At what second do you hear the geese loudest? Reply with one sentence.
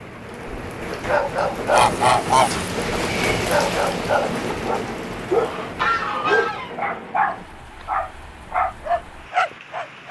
The volume of the geese peaks at 2 seconds.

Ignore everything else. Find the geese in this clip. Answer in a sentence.
The geese can be heard from 1.7 to 2.7 s and from 5.2 to 6.8 s.